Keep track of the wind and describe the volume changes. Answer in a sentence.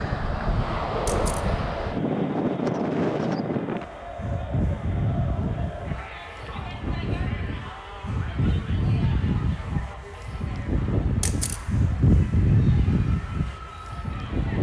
The loudness of the wind goes down, then up.